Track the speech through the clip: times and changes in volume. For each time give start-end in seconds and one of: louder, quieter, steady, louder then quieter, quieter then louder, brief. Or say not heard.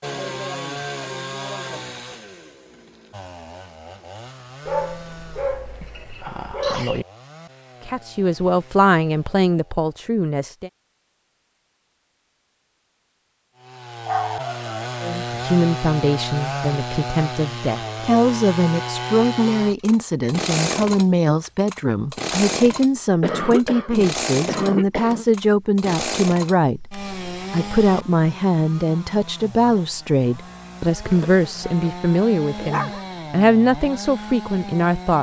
7.8-10.7 brief
15.0-35.1 steady.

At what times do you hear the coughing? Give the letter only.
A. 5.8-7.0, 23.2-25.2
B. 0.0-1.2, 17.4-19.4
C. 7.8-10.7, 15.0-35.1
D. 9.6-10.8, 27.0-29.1
A.